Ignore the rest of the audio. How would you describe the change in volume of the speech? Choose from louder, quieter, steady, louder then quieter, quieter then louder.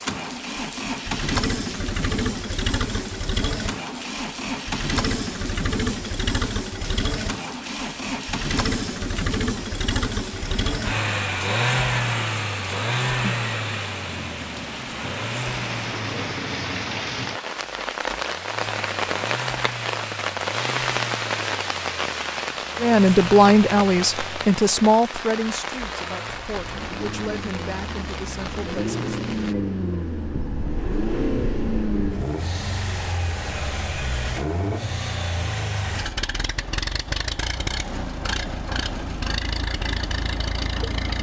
quieter.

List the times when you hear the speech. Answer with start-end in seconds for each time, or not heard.
22.8-29.1.